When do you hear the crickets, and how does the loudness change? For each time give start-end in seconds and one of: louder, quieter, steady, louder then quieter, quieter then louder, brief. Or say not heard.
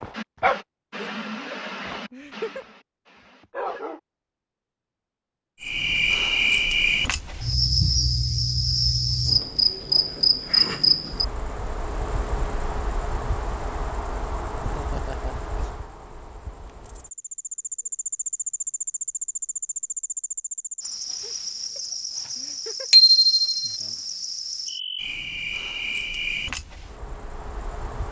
5.6-28.0 quieter.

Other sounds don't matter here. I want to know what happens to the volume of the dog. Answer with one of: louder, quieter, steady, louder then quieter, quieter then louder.
quieter.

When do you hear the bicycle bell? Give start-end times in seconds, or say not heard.
22.9-23.8.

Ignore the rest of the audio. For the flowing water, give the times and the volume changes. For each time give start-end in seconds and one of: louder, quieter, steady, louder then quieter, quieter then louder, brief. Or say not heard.
not heard.